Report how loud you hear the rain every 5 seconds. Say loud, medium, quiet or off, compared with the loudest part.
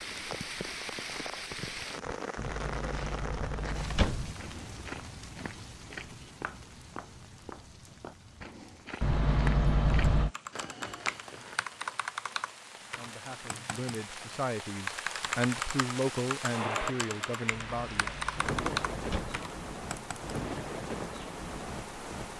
loud, quiet, medium, loud, loud.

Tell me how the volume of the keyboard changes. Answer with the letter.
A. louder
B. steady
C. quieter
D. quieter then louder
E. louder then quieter
D.